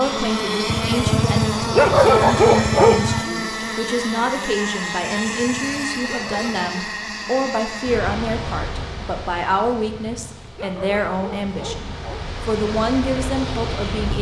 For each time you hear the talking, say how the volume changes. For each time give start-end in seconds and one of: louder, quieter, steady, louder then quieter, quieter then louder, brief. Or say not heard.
0.0-14.1 steady.